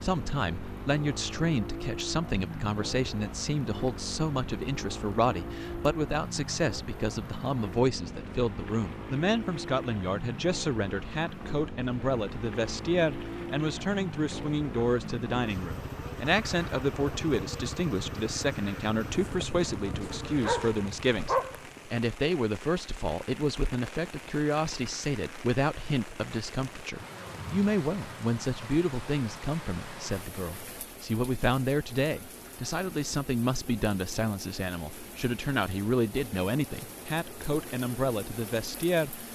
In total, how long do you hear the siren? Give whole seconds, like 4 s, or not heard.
not heard.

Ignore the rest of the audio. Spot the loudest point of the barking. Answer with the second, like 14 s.
21 s.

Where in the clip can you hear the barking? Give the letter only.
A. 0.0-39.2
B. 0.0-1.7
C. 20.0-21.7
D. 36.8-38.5
C.